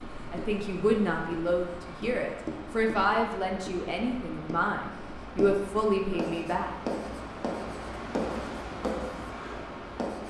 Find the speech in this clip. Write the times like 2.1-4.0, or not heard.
0.3-6.7.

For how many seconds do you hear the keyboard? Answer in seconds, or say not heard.
not heard.